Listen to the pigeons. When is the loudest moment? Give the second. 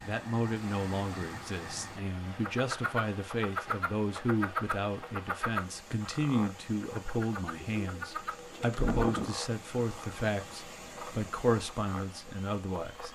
9 s.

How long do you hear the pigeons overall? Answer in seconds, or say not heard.
2 s.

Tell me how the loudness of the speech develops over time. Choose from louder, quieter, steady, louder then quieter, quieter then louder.
steady.